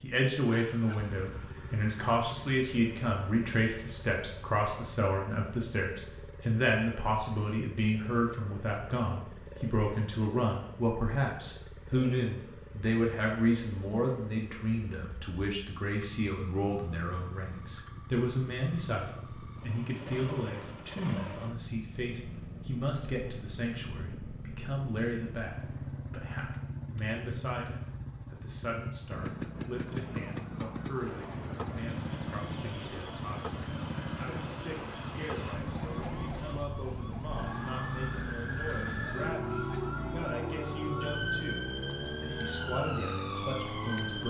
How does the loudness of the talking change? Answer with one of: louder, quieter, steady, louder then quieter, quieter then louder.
quieter.